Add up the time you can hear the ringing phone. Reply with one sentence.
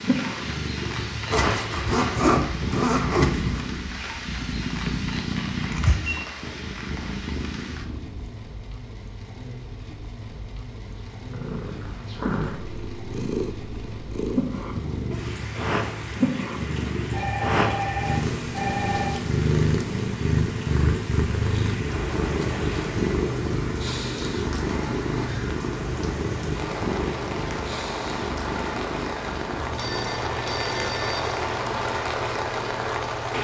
You can hear the ringing phone for 4 seconds altogether.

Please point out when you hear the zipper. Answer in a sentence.
You can hear the zipper from 1.3 to 3.7 s.